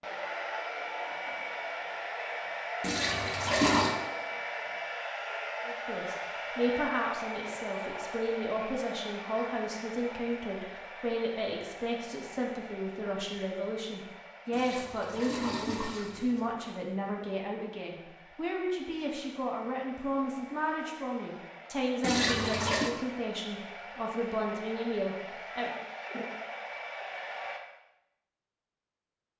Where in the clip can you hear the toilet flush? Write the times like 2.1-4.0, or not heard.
2.8-4.0, 14.5-16.5, 22.0-22.9.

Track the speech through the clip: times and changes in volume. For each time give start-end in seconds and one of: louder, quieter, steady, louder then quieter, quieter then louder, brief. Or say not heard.
5.7-25.8 steady.